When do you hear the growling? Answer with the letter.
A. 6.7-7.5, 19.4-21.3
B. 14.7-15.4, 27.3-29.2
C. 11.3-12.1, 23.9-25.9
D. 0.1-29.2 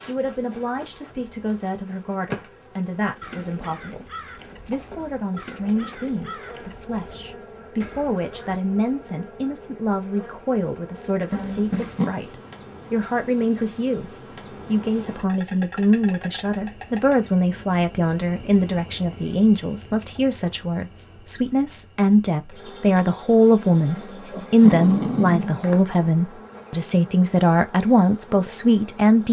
C.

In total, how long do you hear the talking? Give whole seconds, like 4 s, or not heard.
29 s.